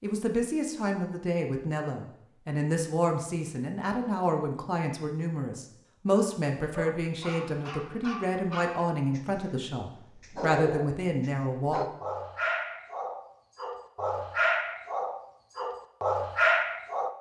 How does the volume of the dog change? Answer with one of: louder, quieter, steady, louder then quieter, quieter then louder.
louder.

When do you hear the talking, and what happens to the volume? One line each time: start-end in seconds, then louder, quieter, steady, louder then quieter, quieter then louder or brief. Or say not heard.
0.0-11.8 steady.